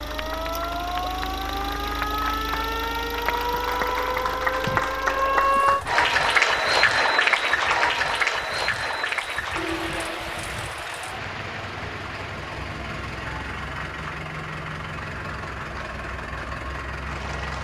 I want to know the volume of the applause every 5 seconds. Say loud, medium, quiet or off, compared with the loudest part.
medium, loud, quiet, quiet.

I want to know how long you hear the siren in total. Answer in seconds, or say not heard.
6 s.